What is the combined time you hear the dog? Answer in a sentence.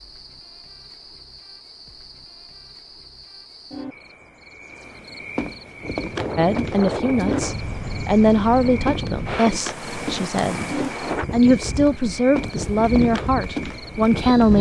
You can't hear the dog here.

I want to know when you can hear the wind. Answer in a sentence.
You can hear the wind from 5.7 to 14.5 s.